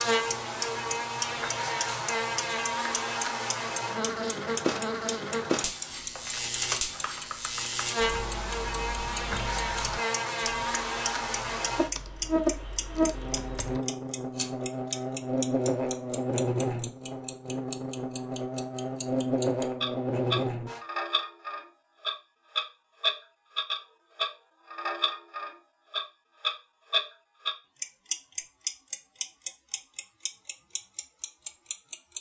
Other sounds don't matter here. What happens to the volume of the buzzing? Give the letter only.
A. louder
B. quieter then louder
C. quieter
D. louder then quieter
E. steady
E.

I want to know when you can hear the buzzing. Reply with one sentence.
You can hear the buzzing from 0.0 to 20.8 s.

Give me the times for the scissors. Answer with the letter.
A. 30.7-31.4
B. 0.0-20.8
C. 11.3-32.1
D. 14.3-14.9
D.